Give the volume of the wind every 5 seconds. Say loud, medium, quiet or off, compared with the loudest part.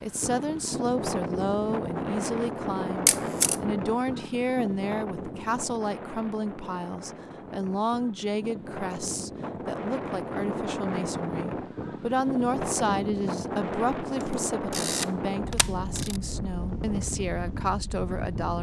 loud, medium, loud, loud.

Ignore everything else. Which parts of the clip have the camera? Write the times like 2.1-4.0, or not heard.
3.0-3.5, 14.2-16.2.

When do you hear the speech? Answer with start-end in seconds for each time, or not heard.
0.0-18.5.